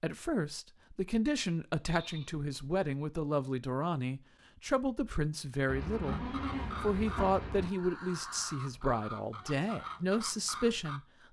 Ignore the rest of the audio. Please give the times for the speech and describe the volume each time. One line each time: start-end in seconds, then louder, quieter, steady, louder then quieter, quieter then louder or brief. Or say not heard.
0.0-11.0 steady.